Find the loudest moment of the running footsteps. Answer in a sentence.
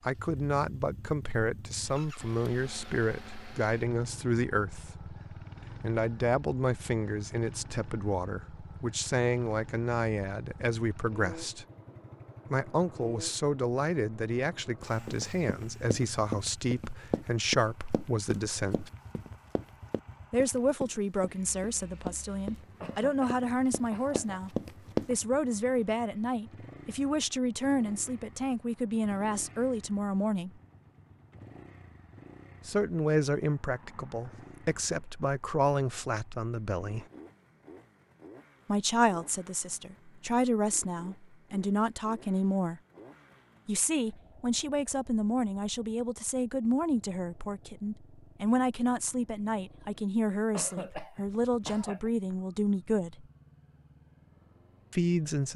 The loudest moment of the running footsteps is at 25 seconds.